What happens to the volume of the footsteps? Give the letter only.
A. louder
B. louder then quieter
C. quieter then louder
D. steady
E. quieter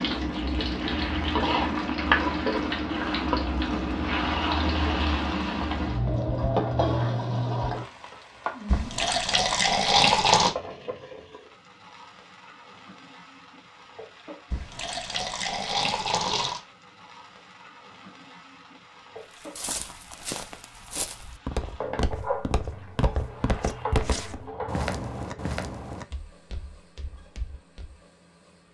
B.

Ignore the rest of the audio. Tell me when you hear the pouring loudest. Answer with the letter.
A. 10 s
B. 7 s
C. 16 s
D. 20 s
A.